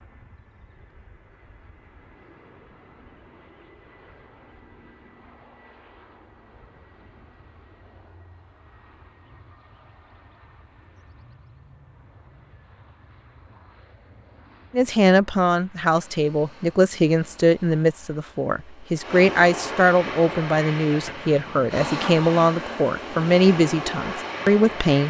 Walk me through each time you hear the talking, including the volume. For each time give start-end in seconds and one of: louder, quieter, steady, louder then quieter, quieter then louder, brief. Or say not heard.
14.7-25.0 steady.